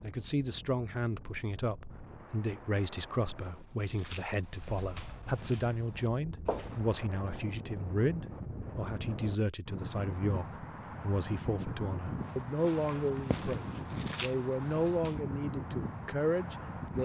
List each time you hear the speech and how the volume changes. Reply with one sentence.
You can hear the speech from 0.0 to 17.0 s, at a steady volume.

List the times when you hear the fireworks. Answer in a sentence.
The fireworks can't be heard in this clip.